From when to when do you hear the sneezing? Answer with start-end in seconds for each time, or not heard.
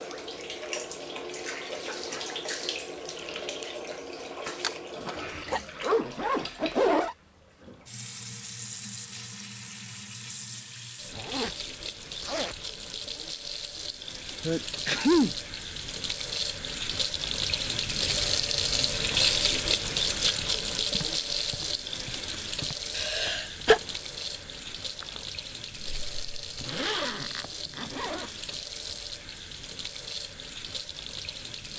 4.6-5.6, 14.4-15.3, 22.9-23.8.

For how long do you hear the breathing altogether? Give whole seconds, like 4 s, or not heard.
not heard.